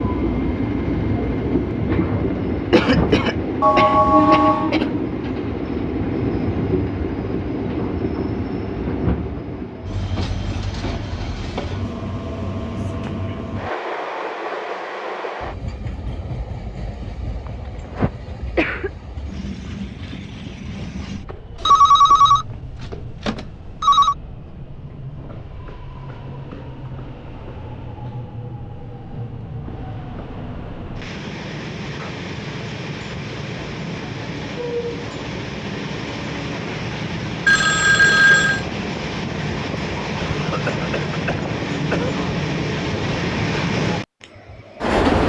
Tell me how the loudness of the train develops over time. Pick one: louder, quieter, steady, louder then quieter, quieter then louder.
quieter then louder.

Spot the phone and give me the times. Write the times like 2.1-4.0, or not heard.
3.6-4.7, 21.6-24.1, 37.5-38.6.